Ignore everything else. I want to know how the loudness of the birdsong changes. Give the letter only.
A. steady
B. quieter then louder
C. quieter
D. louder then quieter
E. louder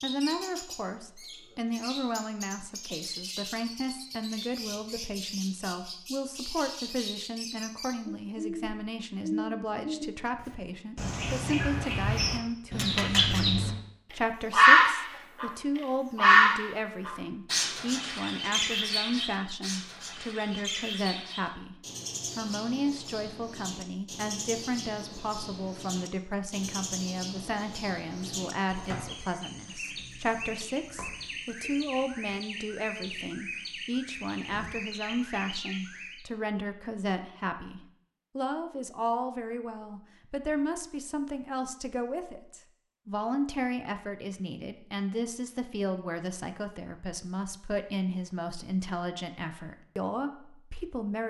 D.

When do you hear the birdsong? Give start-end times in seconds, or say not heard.
0.0-36.2.